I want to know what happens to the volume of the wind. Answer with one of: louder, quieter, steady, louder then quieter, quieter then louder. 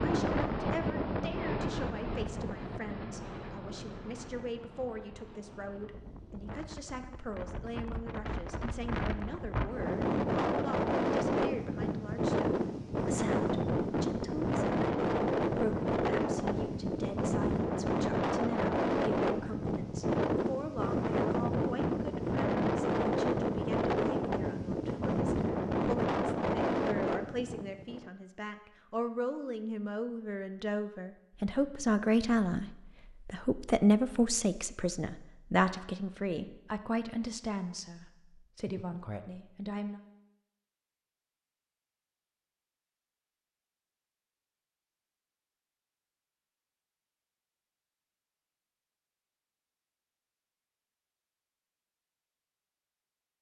louder.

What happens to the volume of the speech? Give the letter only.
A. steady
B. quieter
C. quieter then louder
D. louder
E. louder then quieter
D.